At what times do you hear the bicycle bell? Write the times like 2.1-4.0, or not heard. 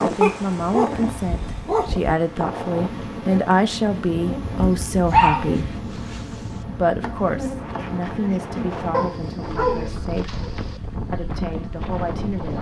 not heard.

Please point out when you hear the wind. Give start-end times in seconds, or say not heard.
0.0-12.5.